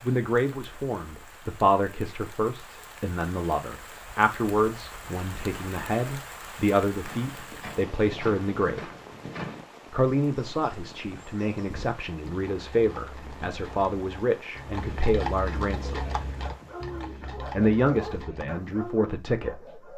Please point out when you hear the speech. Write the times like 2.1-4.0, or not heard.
0.0-8.9, 9.9-16.1, 17.4-19.8.